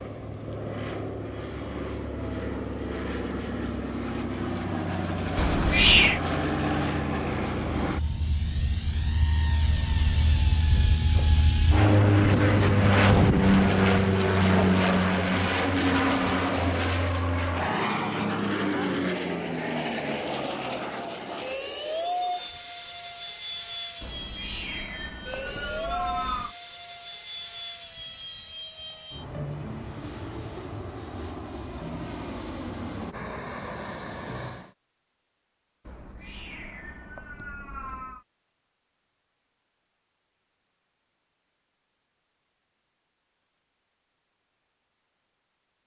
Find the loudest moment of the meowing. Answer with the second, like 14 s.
6 s.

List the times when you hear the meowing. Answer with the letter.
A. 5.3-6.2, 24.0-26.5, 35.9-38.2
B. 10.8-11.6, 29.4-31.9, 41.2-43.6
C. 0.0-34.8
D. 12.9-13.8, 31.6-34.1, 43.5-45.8
A.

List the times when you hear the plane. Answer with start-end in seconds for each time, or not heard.
0.0-34.8.